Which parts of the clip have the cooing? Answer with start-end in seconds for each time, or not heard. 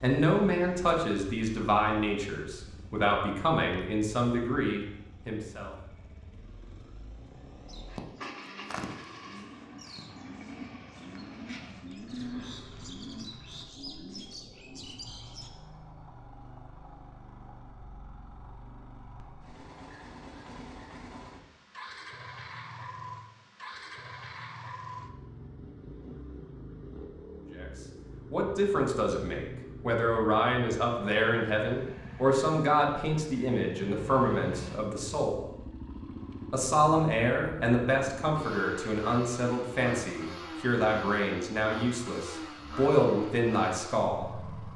7.7-15.5.